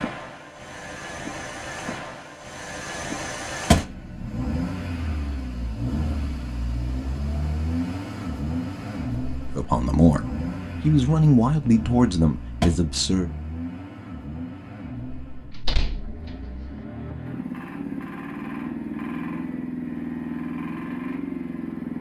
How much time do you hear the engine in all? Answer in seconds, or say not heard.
22 s.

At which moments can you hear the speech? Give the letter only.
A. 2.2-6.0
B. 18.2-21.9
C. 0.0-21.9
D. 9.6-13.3
D.